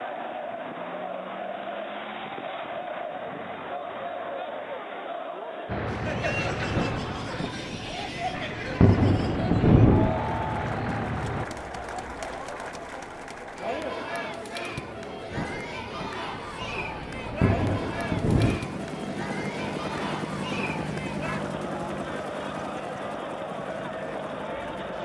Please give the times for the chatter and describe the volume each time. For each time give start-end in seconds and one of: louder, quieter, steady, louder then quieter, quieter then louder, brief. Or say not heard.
0.0-24.9 steady.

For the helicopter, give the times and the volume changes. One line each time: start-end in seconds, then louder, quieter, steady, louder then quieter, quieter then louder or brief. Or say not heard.
5.7-11.4 quieter then louder
16.6-24.9 louder then quieter.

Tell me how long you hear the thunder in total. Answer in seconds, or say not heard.
7 s.